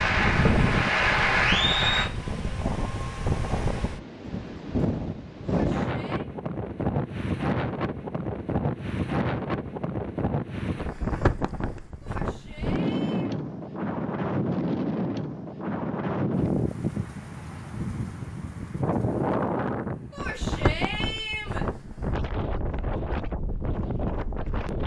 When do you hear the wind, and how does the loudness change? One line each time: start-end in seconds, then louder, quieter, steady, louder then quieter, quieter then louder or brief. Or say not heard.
0.0-24.8 steady.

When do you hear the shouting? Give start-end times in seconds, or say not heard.
5.5-6.2, 12.0-13.3, 20.1-21.6.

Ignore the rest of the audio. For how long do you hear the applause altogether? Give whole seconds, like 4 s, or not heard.
2 s.